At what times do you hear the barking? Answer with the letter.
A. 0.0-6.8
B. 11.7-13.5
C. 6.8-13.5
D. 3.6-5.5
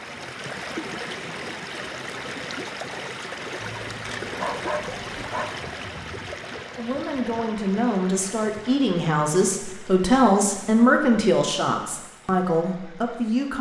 D.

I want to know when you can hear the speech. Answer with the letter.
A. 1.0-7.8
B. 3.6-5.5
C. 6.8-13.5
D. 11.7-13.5
C.